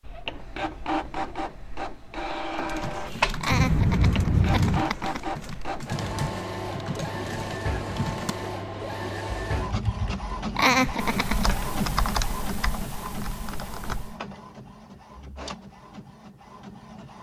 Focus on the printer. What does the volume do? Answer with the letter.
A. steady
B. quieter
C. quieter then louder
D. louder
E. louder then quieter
B.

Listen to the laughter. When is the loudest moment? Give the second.
11 s.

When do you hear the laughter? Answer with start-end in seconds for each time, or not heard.
3.4-5.2, 10.6-11.6.